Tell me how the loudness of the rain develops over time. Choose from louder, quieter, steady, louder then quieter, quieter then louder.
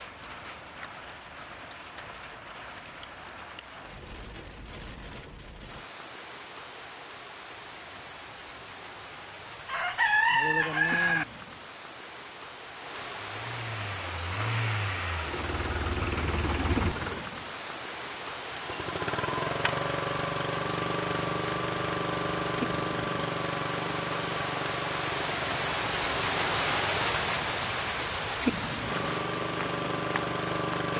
louder.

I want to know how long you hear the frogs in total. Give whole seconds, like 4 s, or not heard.
not heard.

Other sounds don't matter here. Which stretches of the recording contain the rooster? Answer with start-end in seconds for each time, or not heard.
9.7-11.2.